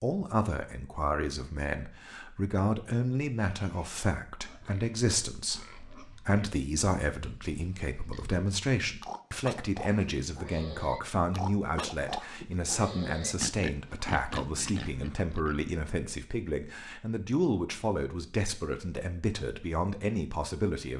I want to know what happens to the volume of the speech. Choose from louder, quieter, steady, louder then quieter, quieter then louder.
steady.